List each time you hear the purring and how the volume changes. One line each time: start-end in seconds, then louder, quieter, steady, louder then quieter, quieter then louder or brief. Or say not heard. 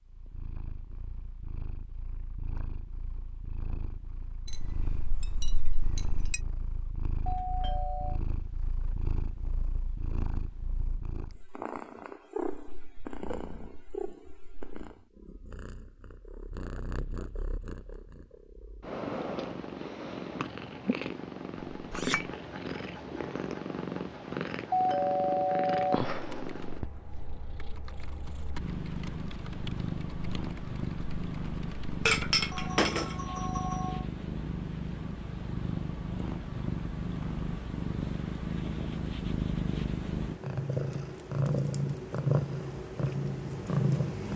0.0-44.3 louder.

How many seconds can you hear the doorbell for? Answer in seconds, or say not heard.
4 s.